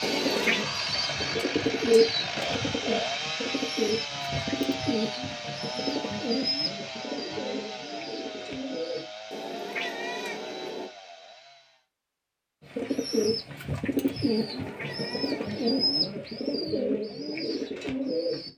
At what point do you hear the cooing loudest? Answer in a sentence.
The volume of the cooing peaks at 2 seconds.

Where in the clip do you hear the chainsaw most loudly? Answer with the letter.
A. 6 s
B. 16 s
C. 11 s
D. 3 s
D.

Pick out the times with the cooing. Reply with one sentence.
The cooing can be heard from 0.0 to 9.1 s and from 12.8 to 18.5 s.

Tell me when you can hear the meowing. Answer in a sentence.
The meowing can be heard from 0.0 to 0.7 s, from 9.3 to 10.9 s and from 14.3 to 16.1 s.